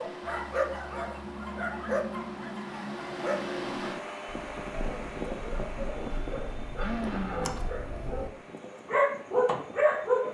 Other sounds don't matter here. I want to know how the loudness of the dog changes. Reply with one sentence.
The loudness of the dog goes down, then up.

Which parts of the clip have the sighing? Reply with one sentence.
The sighing can be heard from 6.0 to 7.5 s.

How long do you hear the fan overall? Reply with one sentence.
The fan can be heard for 10 seconds in total.